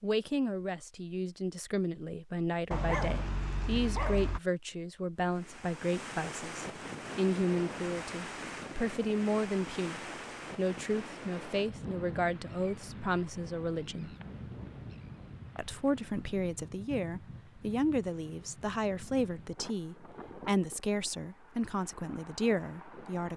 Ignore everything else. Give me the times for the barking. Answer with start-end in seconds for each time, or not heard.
2.7-4.4.